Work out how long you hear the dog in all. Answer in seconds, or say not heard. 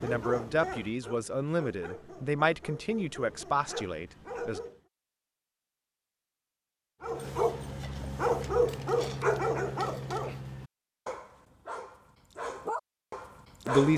12 s.